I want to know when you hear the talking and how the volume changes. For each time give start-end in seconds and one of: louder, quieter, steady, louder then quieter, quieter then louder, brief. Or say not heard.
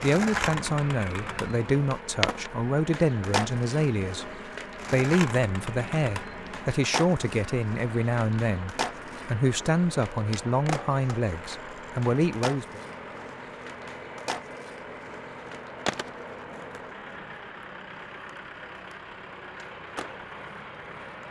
0.0-12.8 steady.